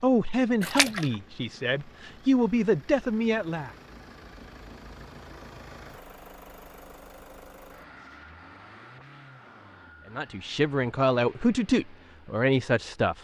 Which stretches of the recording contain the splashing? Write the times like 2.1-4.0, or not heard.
0.6-1.1.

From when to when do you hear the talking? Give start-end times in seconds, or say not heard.
0.0-3.7, 10.1-13.1.